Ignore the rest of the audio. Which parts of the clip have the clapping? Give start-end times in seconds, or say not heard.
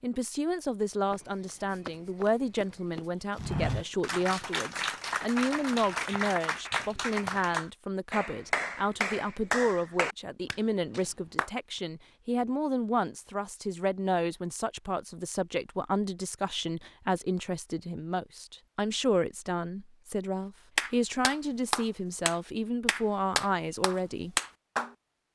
4.0-11.5, 20.8-25.3.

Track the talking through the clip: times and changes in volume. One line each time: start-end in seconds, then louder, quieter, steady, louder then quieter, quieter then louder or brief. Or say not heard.
0.0-24.4 steady.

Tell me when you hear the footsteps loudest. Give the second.
4 s.